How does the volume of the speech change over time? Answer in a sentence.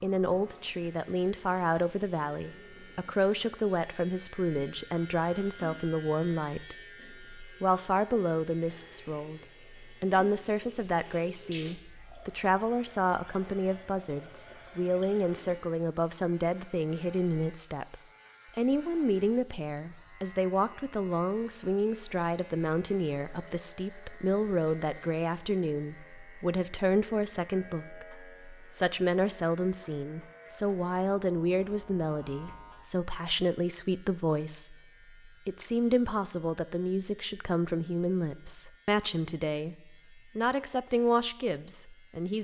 The volume of the speech stays about the same.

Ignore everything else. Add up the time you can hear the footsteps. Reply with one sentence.
The footsteps can't be heard in this clip.